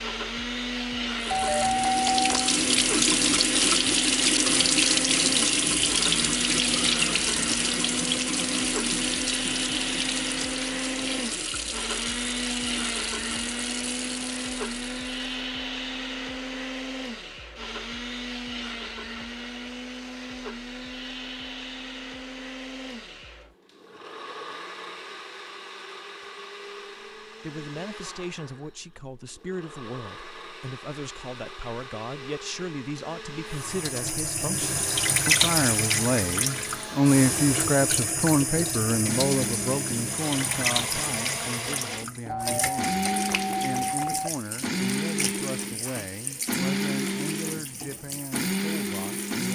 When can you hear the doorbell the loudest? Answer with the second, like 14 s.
2 s.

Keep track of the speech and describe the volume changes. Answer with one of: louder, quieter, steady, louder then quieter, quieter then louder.
louder then quieter.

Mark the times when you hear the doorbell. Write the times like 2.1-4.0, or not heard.
1.3-2.5, 42.2-44.3.